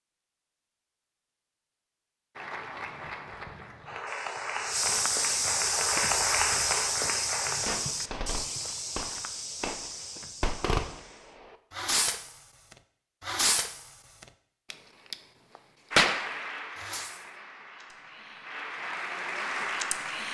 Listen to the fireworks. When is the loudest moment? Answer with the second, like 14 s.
16 s.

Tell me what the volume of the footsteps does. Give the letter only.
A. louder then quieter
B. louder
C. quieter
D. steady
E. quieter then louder
C.